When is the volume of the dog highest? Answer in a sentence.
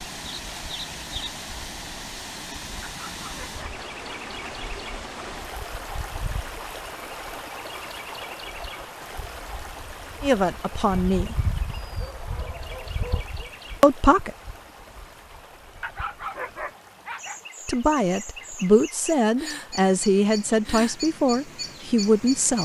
The loudest moment of the dog is at 16 seconds.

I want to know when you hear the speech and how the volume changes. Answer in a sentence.
You can hear the speech briefly from 10.2 to 11.5 s; briefly from 13.8 to 14.3 s; and from 17.6 to 22.6 s, at a steady volume.